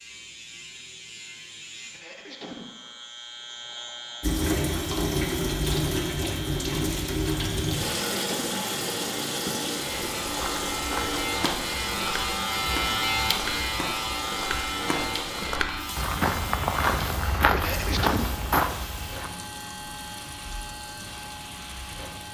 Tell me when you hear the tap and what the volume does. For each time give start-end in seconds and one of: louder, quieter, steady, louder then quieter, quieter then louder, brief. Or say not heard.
4.2-22.2 quieter.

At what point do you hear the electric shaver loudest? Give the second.
13 s.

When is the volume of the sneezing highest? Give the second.
18 s.